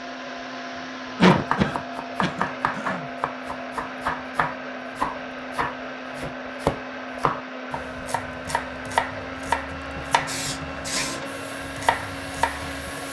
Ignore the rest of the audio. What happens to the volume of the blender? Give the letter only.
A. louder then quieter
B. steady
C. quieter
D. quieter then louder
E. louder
B.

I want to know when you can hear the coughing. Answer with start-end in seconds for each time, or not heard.
1.2-3.0.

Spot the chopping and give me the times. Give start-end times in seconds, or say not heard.
1.3-12.9.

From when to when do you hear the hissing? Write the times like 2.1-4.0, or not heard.
10.2-13.0.